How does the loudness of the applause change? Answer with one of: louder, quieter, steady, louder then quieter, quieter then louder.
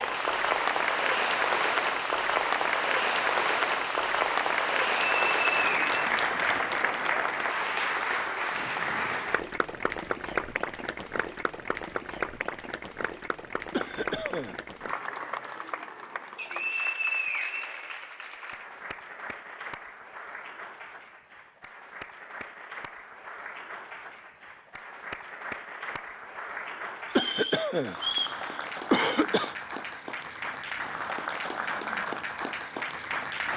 quieter then louder.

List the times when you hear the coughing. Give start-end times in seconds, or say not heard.
13.7-14.6, 27.1-29.6.